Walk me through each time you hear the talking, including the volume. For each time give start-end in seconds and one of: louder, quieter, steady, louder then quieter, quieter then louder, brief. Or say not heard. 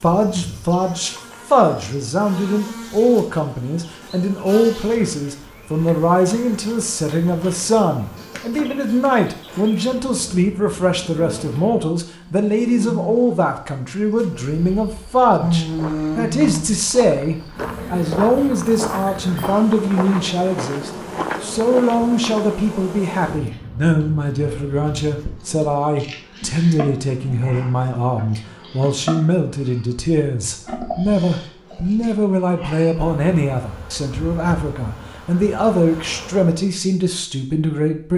0.0-38.1 steady.